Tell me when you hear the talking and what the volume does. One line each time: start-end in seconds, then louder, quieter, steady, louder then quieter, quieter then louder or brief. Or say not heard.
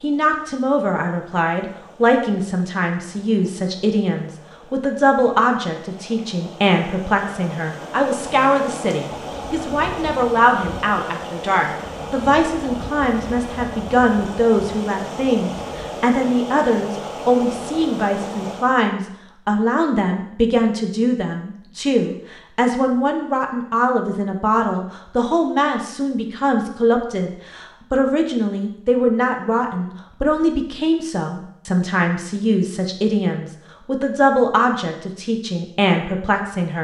0.0-36.7 steady.